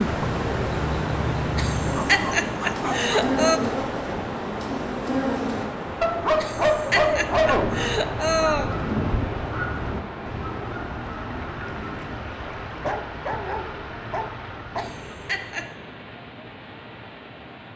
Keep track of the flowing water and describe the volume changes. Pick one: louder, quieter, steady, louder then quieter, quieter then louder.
quieter.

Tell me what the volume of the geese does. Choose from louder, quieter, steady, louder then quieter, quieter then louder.
quieter.